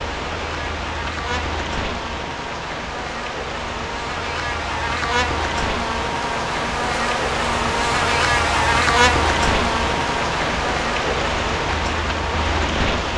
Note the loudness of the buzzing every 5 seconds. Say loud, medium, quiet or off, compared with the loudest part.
medium, loud, medium.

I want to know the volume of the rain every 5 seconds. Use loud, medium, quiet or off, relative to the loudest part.
medium, loud, loud.